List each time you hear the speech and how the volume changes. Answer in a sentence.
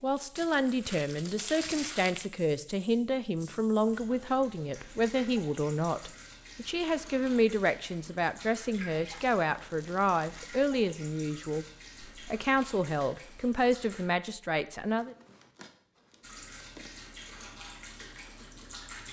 You can hear the speech from 0.0 to 15.2 s, at a steady volume.